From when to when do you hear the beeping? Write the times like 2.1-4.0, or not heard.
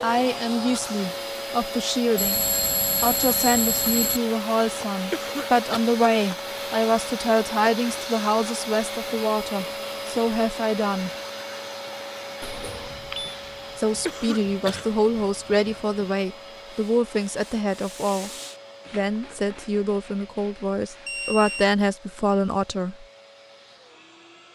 2.1-4.2, 12.4-13.3, 21.1-21.7.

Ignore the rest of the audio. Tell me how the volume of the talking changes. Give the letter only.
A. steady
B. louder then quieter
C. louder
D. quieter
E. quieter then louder
A.